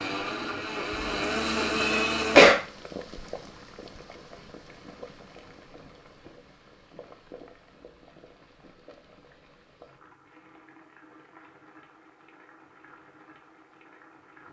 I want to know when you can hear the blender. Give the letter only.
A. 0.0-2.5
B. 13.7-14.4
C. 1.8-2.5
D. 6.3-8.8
A.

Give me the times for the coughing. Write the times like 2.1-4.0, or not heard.
1.8-2.5.